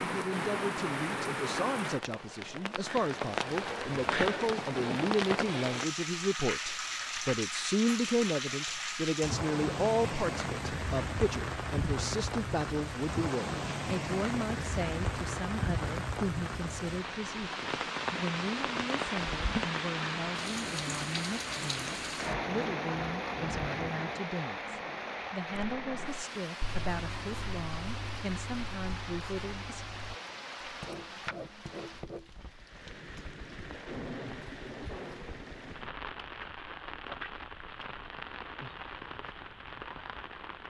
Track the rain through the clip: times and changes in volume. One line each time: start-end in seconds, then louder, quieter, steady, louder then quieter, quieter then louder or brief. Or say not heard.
0.0-40.6 quieter.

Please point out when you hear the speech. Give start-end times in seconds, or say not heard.
0.0-29.9.